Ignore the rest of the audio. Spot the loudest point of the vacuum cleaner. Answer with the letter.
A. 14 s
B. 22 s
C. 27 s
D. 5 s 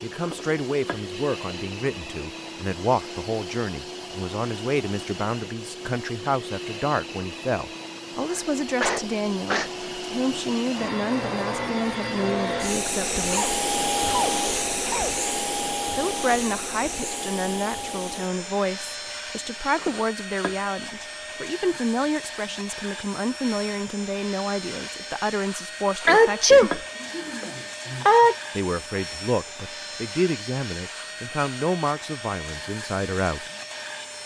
A.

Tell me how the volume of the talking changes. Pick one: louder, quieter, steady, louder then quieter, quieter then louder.
steady.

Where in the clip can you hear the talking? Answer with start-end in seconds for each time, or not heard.
0.0-13.6, 15.9-26.9, 28.6-33.5.